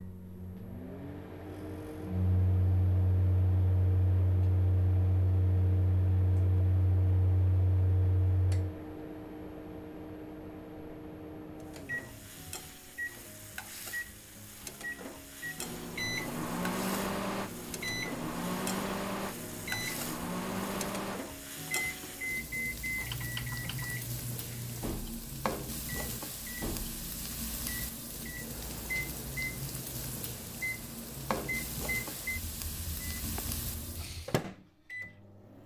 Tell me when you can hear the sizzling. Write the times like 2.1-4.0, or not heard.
11.6-34.4.